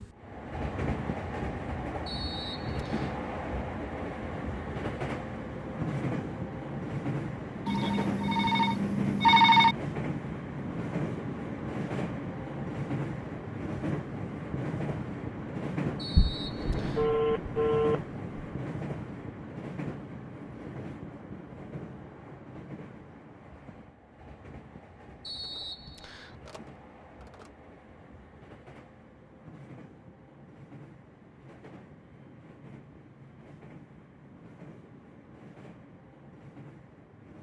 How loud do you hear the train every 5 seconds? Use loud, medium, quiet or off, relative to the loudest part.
loud, loud, loud, loud, medium, quiet, quiet, quiet.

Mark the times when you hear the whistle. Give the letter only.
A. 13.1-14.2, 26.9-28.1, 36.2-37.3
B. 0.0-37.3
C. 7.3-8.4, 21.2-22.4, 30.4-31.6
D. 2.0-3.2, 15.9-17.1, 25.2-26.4
D.